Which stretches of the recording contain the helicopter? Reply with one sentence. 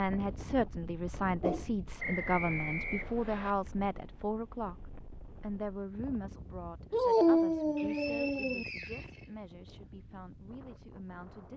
The helicopter can't be heard in this clip.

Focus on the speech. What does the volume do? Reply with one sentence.
The volume of the speech goes down.